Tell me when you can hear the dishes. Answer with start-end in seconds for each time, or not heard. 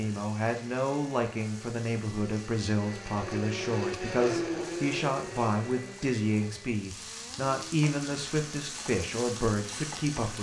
not heard.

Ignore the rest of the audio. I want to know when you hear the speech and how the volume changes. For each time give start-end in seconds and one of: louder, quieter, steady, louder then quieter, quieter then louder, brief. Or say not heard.
0.0-10.3 steady.